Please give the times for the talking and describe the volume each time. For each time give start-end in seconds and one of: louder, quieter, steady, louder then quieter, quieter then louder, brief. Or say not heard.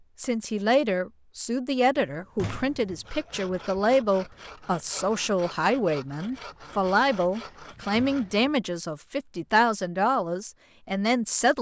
0.2-11.5 steady.